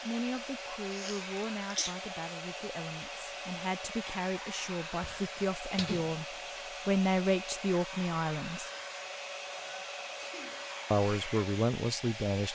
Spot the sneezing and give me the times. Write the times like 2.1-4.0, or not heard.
0.9-1.9, 5.3-6.2, 9.6-10.7.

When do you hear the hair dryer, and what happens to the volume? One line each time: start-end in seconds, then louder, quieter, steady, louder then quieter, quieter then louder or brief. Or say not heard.
0.0-12.5 steady.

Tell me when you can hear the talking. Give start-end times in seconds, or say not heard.
0.0-8.7, 10.9-12.5.